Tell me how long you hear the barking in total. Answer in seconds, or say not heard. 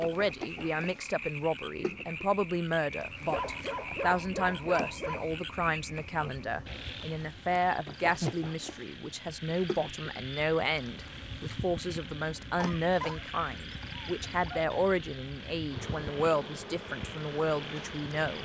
4 s.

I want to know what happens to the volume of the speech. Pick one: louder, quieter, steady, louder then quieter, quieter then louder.
steady.